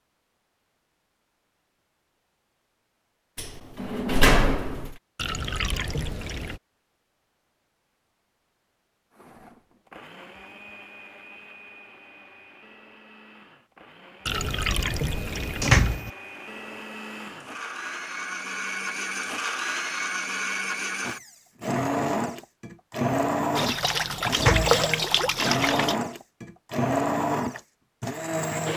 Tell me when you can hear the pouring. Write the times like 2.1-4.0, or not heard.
5.2-6.6, 14.2-16.0, 23.6-25.9.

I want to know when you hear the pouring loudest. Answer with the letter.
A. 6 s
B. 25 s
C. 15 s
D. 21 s
B.